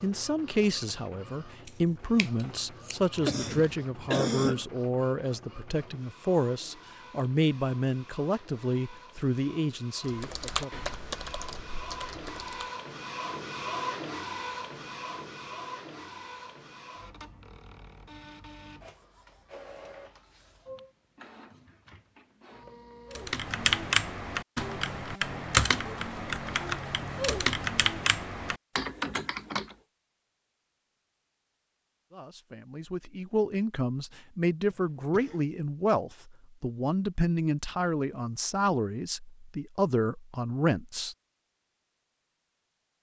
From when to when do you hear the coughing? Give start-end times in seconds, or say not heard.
3.1-4.7, 34.6-35.5.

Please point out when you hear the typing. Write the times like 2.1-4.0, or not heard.
10.1-12.7, 23.1-29.8.